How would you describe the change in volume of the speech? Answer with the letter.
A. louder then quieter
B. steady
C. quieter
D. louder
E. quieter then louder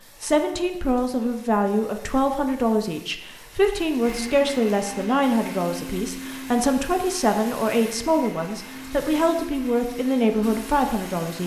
B.